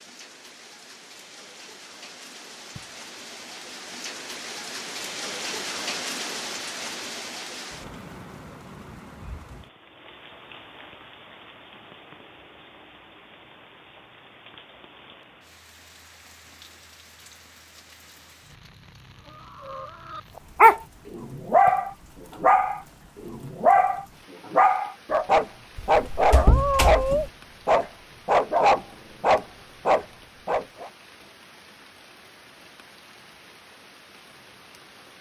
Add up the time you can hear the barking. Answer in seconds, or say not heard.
11 s.